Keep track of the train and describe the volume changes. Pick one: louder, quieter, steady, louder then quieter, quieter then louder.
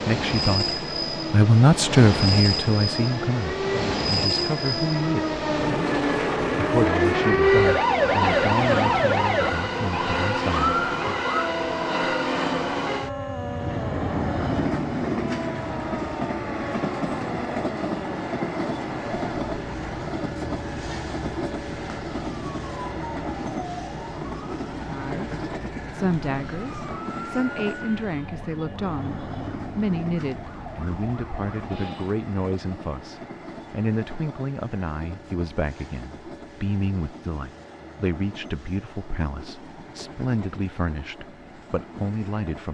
quieter.